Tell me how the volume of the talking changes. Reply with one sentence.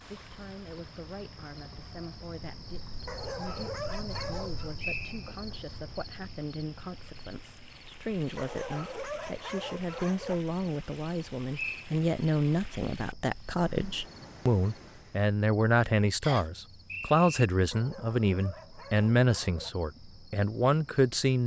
The volume of the talking goes up.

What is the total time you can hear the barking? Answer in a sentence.
The barking can be heard for 6 seconds in total.